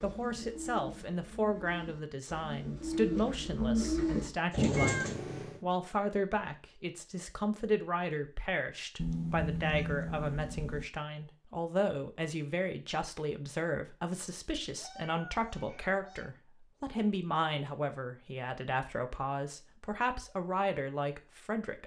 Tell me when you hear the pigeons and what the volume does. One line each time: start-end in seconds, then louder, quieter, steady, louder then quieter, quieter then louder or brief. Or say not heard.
0.0-5.2 louder.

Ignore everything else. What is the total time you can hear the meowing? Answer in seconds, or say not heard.
4 s.